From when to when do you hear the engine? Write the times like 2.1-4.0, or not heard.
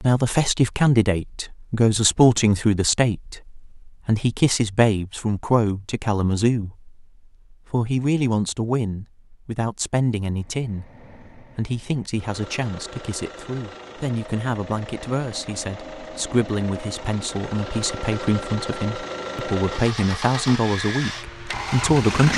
10.2-22.3.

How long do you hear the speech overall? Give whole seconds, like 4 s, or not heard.
22 s.